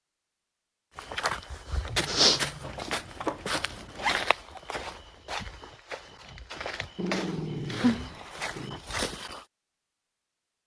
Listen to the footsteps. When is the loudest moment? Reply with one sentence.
The volume of the footsteps peaks at 2 seconds.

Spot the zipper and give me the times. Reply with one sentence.
You can hear the zipper from 2.6 to 4.3 s.